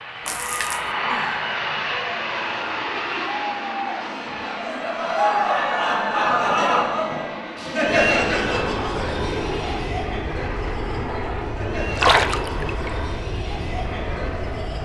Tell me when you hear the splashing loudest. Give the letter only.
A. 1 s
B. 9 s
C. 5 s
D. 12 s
D.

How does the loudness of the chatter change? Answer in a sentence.
The volume of the chatter goes up, then down.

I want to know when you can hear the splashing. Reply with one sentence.
The splashing can be heard from 0.2 to 0.8 s and from 11.9 to 12.9 s.